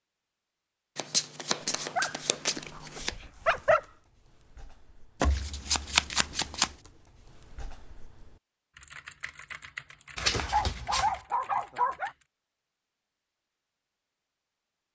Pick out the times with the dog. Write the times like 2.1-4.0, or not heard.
1.9-3.8, 10.4-12.1.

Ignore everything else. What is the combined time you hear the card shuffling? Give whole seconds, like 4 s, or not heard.
5 s.